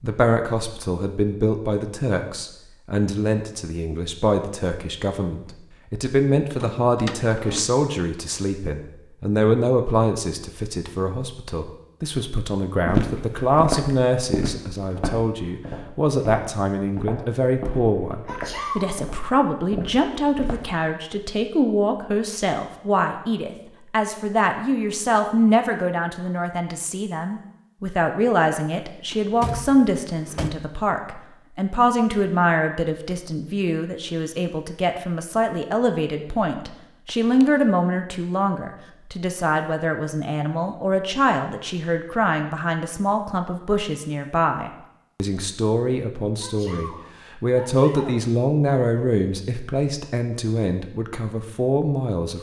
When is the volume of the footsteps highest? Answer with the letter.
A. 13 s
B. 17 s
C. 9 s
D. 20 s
A.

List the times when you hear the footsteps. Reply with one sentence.
The footsteps can be heard from 12.8 to 20.7 s.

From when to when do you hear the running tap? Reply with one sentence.
The running tap can't be heard in this clip.